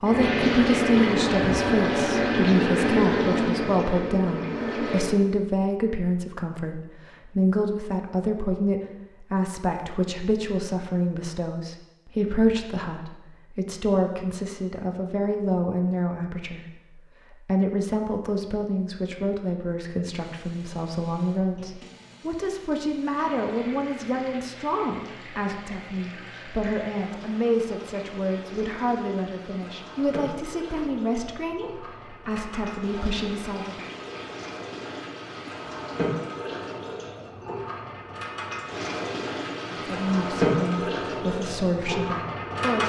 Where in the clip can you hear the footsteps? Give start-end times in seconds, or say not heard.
not heard.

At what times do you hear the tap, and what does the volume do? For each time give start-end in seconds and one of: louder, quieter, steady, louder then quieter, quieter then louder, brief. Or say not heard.
0.0-5.2 quieter
20.1-42.8 louder.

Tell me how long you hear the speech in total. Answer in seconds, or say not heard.
37 s.